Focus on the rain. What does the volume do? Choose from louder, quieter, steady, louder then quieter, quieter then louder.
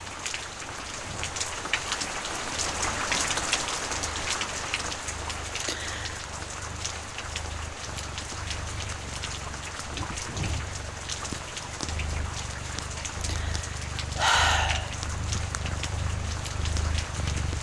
quieter.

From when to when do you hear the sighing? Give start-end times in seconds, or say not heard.
5.6-6.2, 13.2-15.4.